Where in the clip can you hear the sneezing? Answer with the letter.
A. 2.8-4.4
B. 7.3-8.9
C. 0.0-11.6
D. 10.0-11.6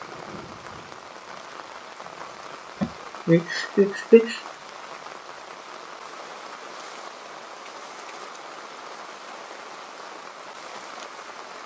A.